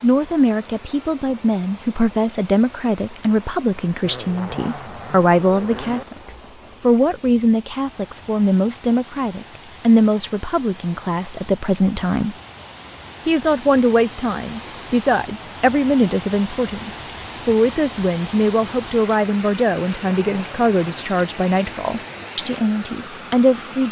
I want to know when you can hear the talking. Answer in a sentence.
You can hear the talking from 0.0 to 12.3 s and from 13.2 to 23.8 s.